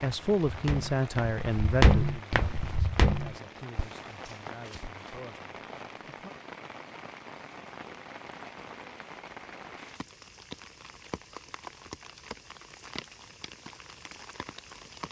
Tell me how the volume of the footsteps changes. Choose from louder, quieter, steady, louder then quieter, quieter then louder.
louder then quieter.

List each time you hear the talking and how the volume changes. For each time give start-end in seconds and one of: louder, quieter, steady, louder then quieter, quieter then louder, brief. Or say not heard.
0.0-6.3 quieter.